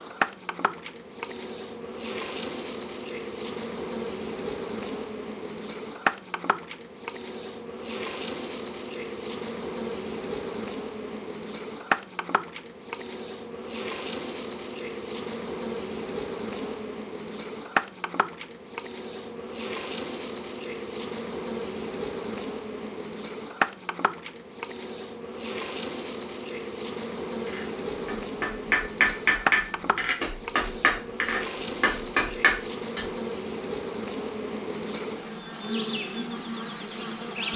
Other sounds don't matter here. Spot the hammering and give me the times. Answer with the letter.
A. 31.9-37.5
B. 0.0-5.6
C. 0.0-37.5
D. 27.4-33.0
D.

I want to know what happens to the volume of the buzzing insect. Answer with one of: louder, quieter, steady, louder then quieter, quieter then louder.
steady.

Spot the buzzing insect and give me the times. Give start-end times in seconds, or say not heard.
0.0-37.5.